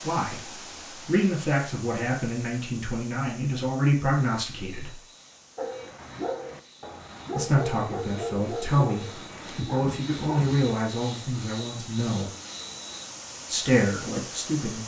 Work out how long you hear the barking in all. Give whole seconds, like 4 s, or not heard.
5 s.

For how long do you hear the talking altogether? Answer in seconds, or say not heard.
11 s.